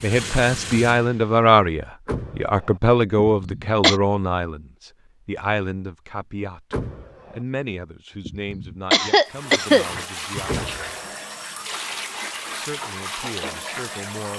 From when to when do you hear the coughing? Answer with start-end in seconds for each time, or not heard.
3.2-4.0, 8.2-10.6.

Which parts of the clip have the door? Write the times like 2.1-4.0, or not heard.
2.0-2.8, 6.7-7.4, 10.4-11.2.